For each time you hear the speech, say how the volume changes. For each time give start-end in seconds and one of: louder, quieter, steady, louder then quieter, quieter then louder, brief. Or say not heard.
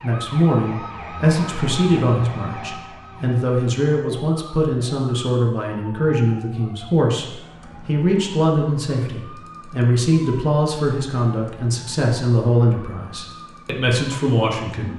0.0-14.9 steady.